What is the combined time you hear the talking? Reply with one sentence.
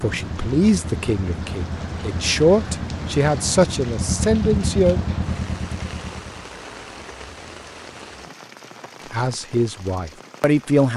The talking can be heard for 7 seconds in total.